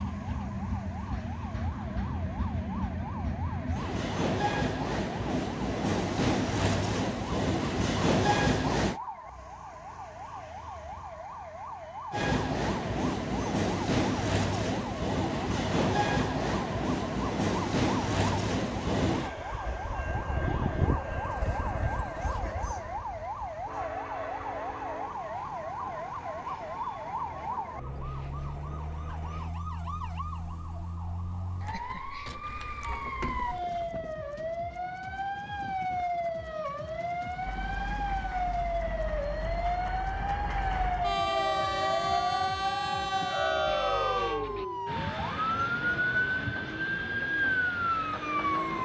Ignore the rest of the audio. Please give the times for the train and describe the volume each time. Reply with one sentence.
You can hear the train from 0.0 to 9.0 s, getting louder; from 12.1 to 29.6 s, getting quieter; and from 37.4 to 48.7 s, getting louder then quieter.